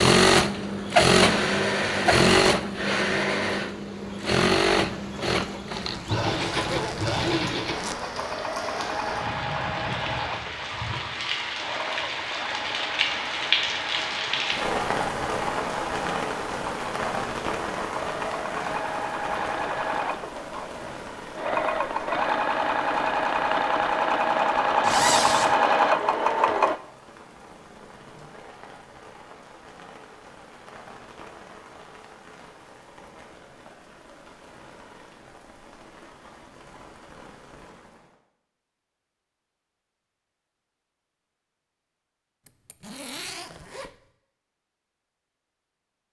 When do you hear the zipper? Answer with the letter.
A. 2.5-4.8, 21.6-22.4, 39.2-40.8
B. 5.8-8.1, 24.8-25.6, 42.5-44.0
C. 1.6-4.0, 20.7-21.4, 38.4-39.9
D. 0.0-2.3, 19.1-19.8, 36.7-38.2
B.